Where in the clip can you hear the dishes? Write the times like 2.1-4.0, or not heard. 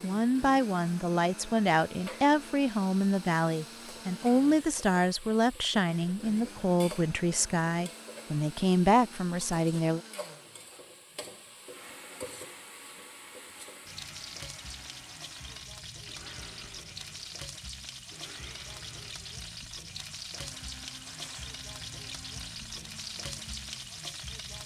21.0-21.6.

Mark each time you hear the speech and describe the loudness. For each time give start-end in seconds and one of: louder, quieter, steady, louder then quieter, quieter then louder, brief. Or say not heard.
0.0-10.0 steady.